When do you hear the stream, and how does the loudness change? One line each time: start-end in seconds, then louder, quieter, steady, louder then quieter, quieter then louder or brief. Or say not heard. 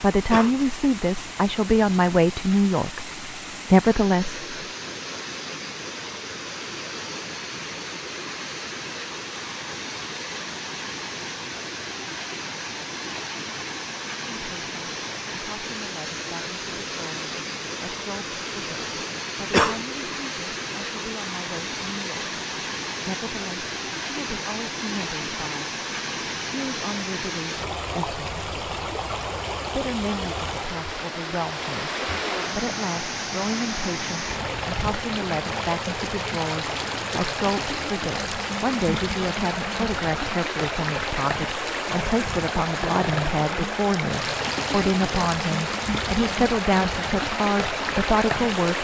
0.0-48.7 louder.